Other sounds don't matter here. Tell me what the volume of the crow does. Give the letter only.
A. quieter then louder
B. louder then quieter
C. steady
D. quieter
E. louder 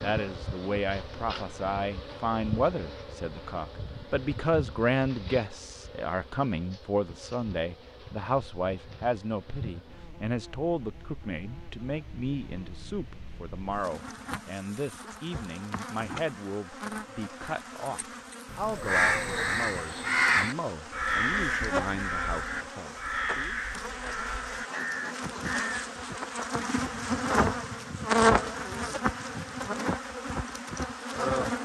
D.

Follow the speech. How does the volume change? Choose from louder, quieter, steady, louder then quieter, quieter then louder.
quieter.